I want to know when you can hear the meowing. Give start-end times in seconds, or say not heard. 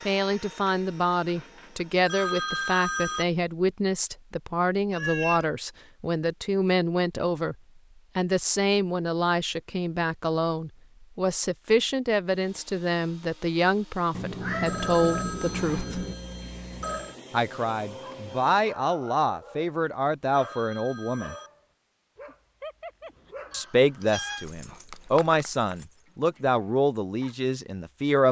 4.9-5.5, 14.2-16.1, 23.5-24.4.